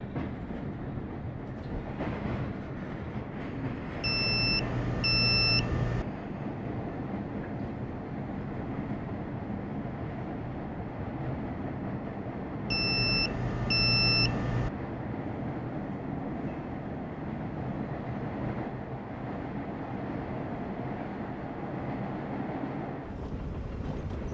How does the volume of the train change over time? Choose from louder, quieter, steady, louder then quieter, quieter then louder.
steady.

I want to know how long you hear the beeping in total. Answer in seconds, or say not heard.
4 s.